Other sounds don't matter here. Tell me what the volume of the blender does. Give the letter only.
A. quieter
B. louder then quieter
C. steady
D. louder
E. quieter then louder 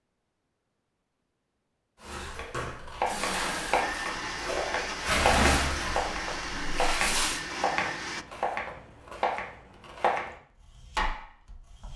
C.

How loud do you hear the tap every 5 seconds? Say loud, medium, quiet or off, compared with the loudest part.
medium, loud, off.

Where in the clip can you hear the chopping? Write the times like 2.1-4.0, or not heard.
2.4-11.9.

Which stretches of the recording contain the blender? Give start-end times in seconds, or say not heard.
3.0-8.2.